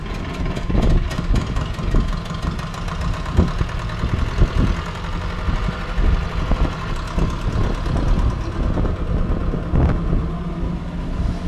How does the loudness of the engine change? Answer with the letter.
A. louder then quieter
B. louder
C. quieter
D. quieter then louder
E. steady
E.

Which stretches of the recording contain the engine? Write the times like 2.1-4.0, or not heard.
0.0-11.4.